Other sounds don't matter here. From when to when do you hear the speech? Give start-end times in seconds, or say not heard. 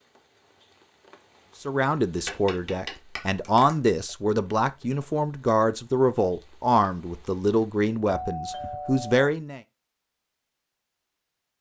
1.6-9.6.